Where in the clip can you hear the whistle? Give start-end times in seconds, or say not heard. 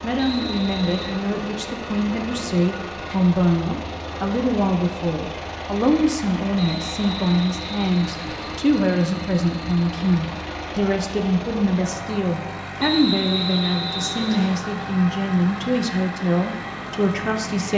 0.1-1.2, 6.5-8.6, 12.8-14.7.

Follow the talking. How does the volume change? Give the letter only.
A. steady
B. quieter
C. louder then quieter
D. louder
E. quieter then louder
A.